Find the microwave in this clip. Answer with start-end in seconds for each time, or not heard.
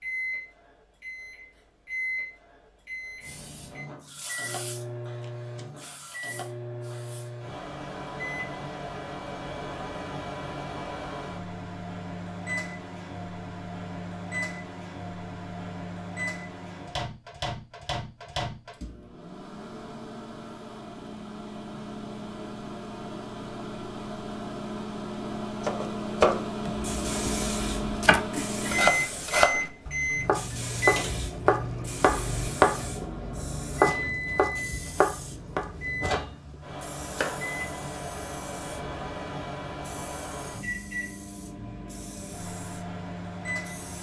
0.0-43.9.